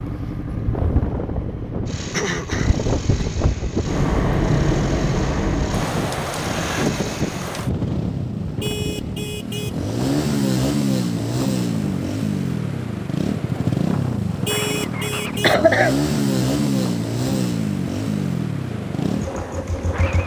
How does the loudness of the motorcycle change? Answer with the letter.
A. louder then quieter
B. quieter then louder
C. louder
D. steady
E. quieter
C.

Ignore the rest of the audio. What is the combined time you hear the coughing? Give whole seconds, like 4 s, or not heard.
2 s.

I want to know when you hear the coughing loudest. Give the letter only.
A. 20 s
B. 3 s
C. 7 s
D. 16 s
D.